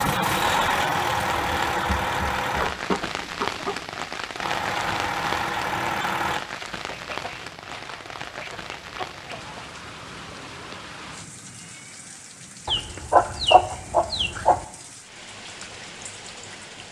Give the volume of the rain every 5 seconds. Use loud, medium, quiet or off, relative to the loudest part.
loud, loud, medium, medium.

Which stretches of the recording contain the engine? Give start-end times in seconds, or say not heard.
0.0-2.8, 4.3-6.5.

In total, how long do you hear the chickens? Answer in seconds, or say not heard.
7 s.